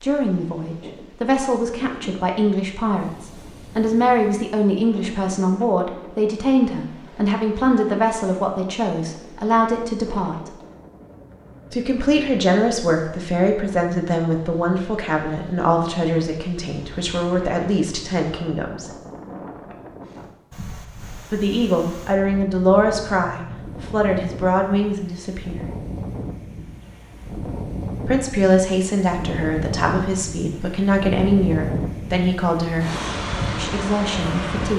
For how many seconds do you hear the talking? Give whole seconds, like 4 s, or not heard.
28 s.